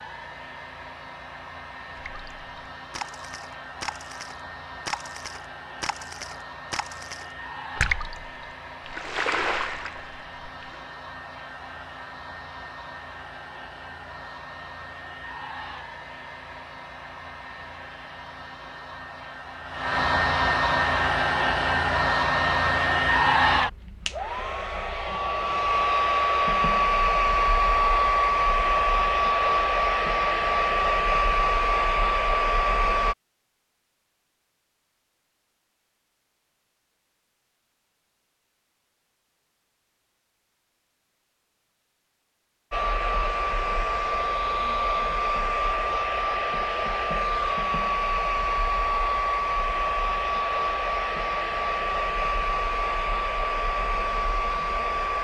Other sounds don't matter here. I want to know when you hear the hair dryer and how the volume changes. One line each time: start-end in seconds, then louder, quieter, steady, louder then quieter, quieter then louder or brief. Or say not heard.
0.0-33.1 louder
42.7-55.1 steady.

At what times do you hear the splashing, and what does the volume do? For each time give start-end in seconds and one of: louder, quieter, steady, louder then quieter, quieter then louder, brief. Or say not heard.
2.0-10.8 louder.